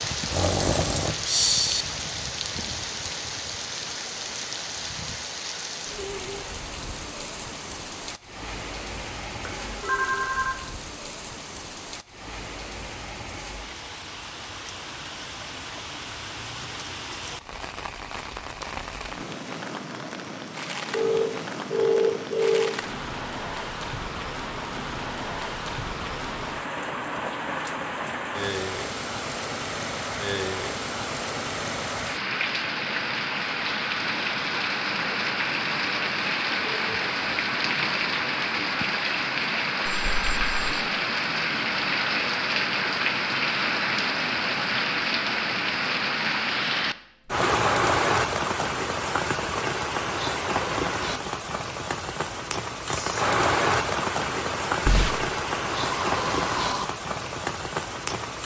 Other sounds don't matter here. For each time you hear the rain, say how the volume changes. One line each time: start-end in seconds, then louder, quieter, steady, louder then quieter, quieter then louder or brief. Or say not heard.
0.0-58.4 louder.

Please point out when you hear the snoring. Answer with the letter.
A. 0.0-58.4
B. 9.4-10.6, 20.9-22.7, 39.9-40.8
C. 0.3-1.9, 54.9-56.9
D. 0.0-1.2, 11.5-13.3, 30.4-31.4
C.